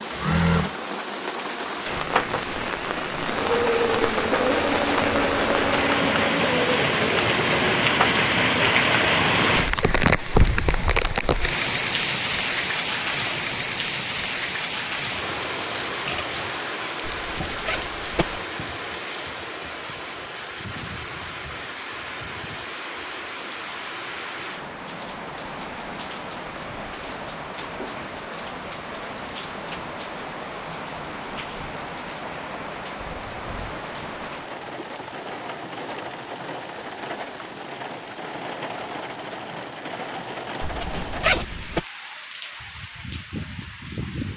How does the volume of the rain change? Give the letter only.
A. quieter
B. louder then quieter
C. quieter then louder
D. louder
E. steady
A.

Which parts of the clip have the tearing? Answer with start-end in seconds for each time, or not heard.
not heard.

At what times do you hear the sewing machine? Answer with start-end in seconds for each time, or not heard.
0.0-8.2.